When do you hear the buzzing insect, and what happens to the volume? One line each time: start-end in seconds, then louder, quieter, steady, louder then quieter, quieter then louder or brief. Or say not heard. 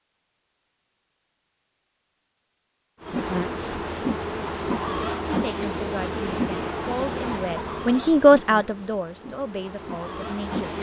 3.0-10.7 quieter.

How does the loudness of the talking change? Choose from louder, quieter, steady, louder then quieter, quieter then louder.
louder then quieter.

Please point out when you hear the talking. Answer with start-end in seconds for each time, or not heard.
5.2-10.7.